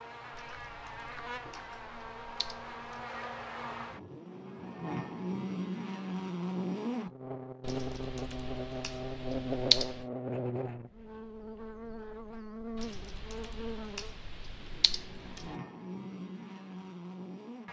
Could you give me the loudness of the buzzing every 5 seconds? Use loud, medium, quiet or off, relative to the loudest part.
medium, loud, medium, medium.